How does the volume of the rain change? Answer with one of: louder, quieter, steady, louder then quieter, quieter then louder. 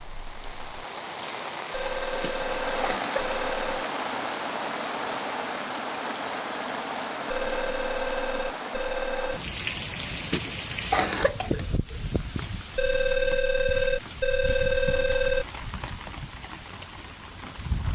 quieter.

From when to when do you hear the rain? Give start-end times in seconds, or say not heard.
0.0-17.9.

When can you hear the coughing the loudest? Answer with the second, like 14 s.
11 s.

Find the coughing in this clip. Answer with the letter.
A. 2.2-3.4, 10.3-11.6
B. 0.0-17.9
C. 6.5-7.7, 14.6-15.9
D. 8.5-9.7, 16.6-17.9
A.